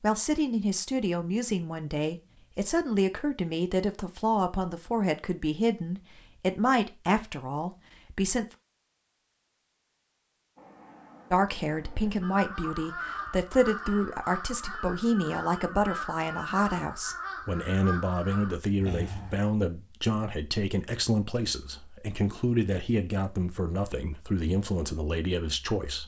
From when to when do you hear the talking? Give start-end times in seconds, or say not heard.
0.0-8.6, 11.3-26.0.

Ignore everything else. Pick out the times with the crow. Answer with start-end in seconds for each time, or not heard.
12.2-19.4.